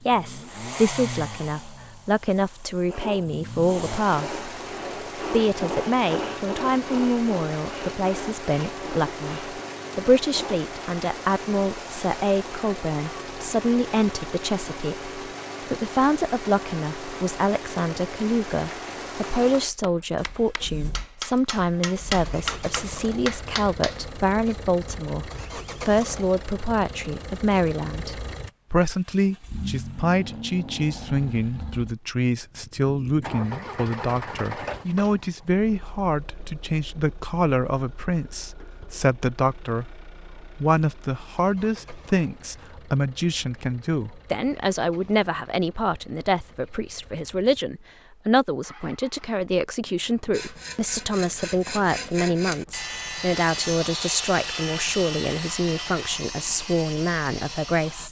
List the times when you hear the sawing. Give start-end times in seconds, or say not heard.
2.8-10.6, 50.3-58.0.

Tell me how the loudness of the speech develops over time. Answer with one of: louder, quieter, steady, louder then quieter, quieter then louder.
steady.